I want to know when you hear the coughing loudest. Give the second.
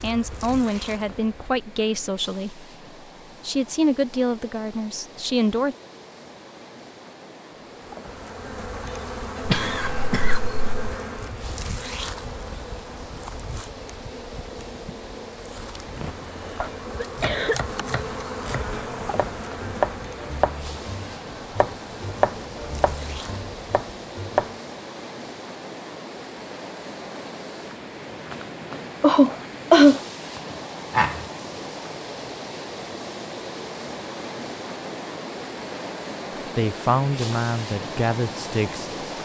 30 s.